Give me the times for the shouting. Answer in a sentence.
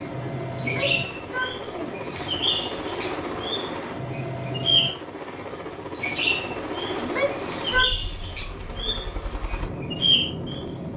You can hear the shouting from 0.6 to 2.2 s and from 7.0 to 7.9 s.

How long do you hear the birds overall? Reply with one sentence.
The birds can be heard for 11 seconds in total.